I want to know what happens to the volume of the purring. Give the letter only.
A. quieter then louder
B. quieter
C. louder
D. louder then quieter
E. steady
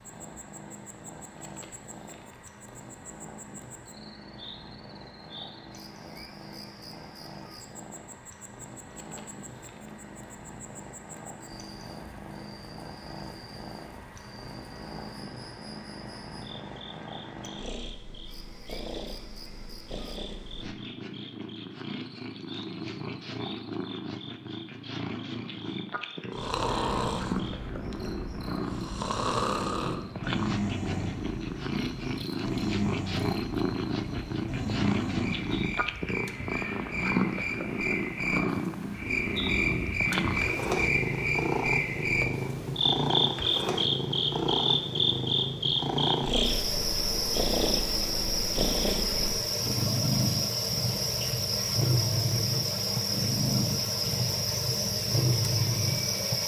C.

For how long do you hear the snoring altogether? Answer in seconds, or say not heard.
10 s.